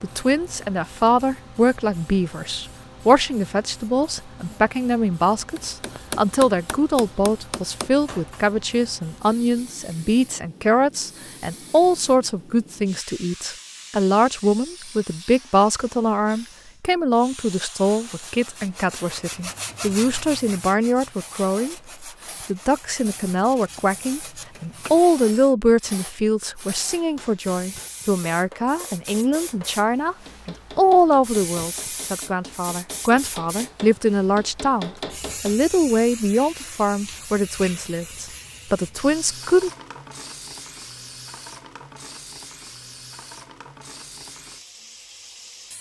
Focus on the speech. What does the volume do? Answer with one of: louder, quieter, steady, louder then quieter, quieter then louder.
steady.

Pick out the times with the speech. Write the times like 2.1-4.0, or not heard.
0.0-21.8, 22.4-39.7.